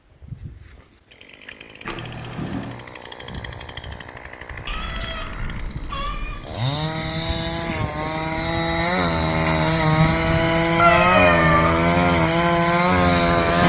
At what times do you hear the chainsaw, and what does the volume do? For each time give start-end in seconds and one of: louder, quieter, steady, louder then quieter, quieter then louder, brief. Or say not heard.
0.2-13.6 louder.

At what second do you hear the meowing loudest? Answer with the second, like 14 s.
11 s.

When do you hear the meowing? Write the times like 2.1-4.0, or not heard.
1.9-2.8, 4.7-6.4, 10.8-11.7.